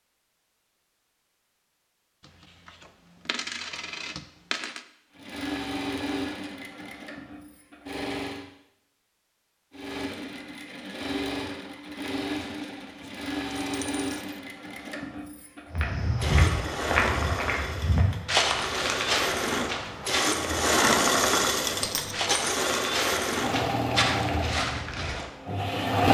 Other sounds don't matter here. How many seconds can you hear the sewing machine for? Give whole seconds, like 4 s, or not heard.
20 s.